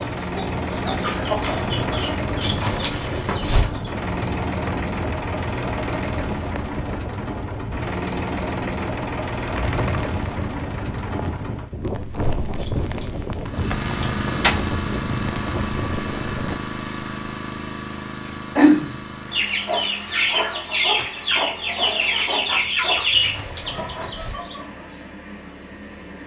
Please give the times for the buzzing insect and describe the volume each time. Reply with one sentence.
The buzzing insect can't be heard in this clip.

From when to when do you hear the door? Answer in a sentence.
The door can be heard from 2.4 to 3.7 s, from 12.6 to 14.6 s and from 23.1 to 24.4 s.